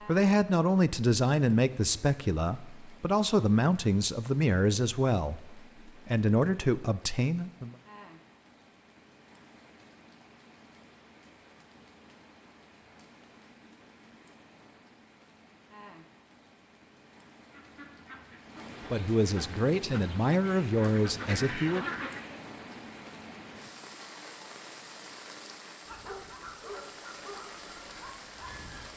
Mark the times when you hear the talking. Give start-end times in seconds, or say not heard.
0.1-7.8, 18.9-21.9.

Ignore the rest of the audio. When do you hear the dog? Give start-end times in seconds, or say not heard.
25.9-28.9.